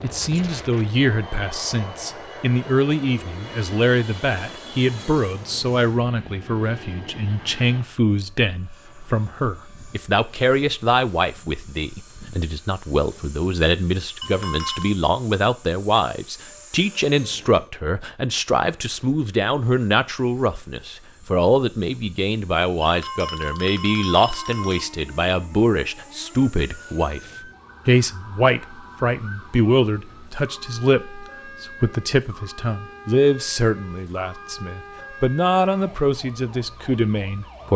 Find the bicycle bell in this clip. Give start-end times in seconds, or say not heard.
14.2-14.9, 22.8-24.9.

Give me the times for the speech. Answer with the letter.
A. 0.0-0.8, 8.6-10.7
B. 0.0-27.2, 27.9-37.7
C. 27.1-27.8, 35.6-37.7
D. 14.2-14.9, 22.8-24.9
B.